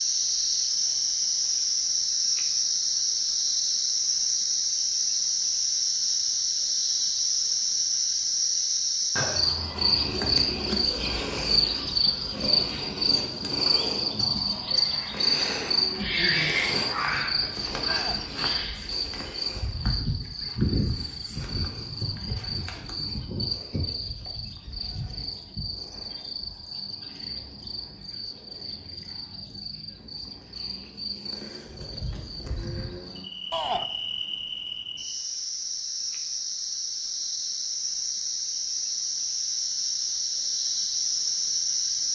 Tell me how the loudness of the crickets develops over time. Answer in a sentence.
The loudness of the crickets goes down, then up.